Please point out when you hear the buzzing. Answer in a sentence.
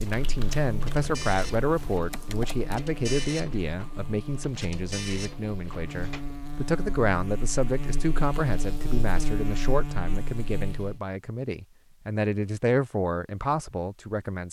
The buzzing can be heard from 0.0 to 11.0 s.